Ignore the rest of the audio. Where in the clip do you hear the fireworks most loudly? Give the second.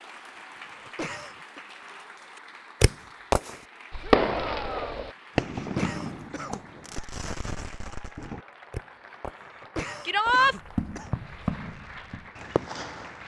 4 s.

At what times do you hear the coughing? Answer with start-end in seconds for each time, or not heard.
0.4-1.6, 5.1-7.0, 9.1-11.2.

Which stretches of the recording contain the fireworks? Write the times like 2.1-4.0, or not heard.
2.8-13.2.